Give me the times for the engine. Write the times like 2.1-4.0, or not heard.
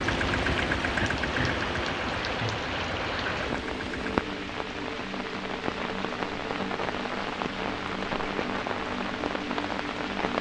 0.0-4.3.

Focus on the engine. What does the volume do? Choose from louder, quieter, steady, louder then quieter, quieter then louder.
quieter.